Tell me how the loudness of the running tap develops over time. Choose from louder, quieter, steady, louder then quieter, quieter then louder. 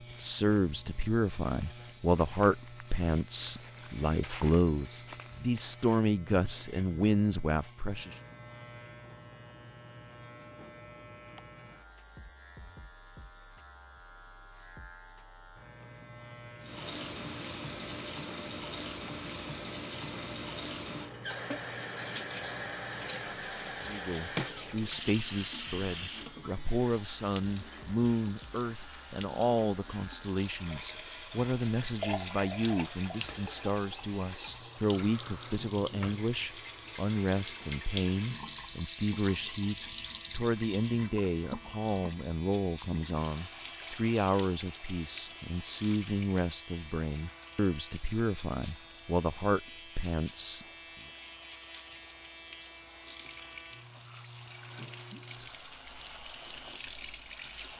quieter.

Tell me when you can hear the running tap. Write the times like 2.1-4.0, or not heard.
16.6-57.7.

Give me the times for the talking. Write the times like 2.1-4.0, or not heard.
0.1-8.2, 23.9-50.6.